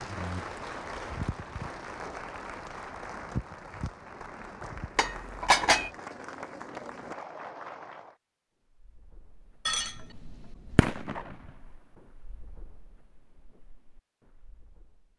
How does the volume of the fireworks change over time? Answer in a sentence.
The loudness of the fireworks goes up, then down.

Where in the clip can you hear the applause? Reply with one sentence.
You can hear the applause from 0.0 to 8.2 s.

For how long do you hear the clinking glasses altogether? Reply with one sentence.
You can hear the clinking glasses for 2 seconds altogether.